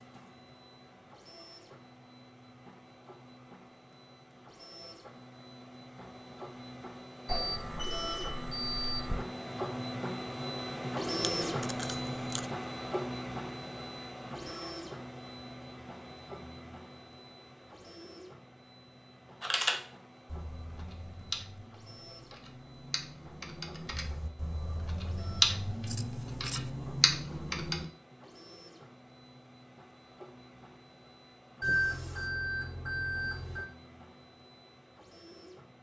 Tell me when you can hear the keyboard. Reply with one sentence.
The keyboard can be heard from 19.4 to 27.9 s.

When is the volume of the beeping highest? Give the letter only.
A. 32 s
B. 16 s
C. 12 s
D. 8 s
A.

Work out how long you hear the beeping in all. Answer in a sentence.
You can hear the beeping for 4 seconds altogether.